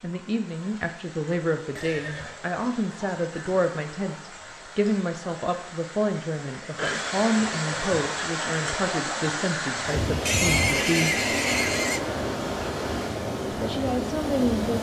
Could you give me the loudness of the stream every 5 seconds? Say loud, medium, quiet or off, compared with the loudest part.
quiet, loud, loud.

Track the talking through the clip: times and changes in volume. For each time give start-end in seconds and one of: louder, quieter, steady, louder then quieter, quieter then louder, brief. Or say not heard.
0.0-11.3 steady
13.5-14.7 brief.